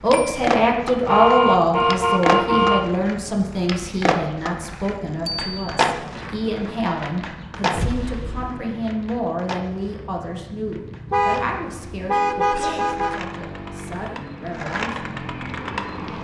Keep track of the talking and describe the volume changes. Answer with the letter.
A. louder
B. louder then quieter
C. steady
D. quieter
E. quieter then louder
D.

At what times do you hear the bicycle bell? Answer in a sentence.
You can hear the bicycle bell from 5.2 to 5.8 s.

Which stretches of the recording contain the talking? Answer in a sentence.
The talking can be heard from 0.0 to 15.1 s.